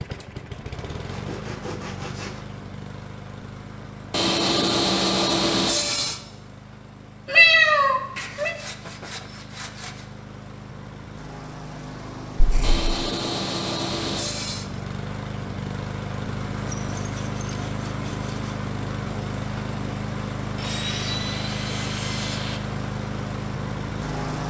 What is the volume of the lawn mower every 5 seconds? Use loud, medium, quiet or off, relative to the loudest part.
medium, quiet, medium, loud, loud.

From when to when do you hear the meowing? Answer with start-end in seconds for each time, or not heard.
7.2-8.6, 12.3-12.8.